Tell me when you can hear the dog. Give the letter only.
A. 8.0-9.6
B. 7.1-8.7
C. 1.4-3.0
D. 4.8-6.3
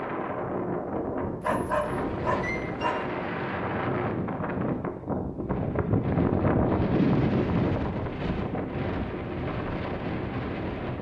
C.